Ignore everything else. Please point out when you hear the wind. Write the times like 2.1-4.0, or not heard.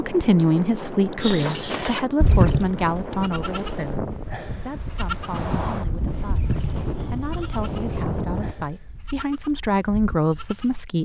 0.0-8.6.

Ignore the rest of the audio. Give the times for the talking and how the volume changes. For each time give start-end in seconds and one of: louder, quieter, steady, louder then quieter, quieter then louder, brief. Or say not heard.
0.0-11.0 quieter then louder.